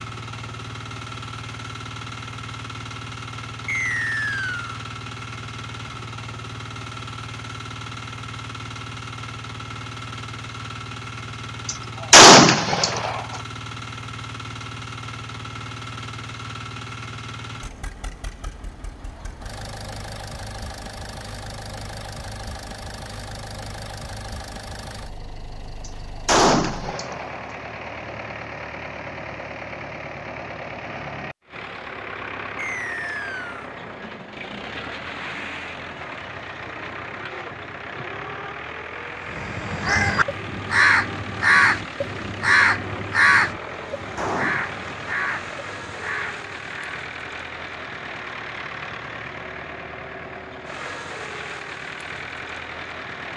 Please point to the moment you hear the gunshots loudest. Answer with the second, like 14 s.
12 s.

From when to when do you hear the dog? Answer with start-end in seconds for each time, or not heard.
not heard.